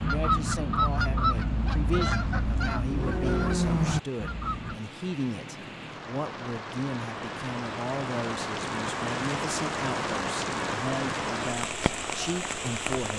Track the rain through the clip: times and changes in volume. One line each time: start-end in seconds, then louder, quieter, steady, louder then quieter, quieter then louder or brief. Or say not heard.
0.0-13.1 louder.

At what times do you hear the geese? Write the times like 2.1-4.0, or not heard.
0.0-4.8.